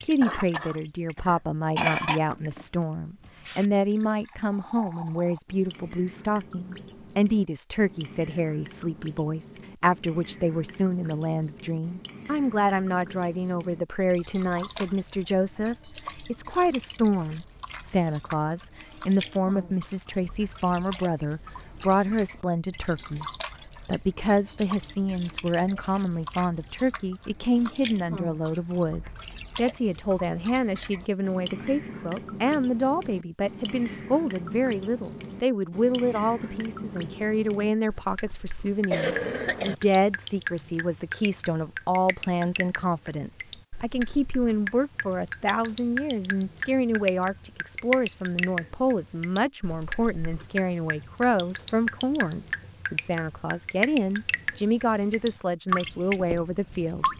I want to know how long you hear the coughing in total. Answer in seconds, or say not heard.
3 s.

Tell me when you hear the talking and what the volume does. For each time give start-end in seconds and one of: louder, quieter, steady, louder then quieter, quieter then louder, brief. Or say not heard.
0.0-23.2 steady
23.9-57.1 steady.